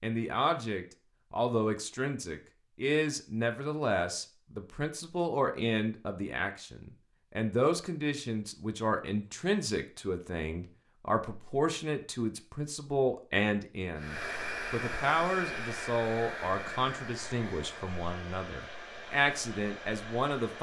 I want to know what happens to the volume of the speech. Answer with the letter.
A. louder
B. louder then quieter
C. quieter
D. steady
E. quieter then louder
D.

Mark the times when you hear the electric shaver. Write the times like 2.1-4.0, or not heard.
not heard.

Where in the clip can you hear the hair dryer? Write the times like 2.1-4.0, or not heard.
13.9-20.5.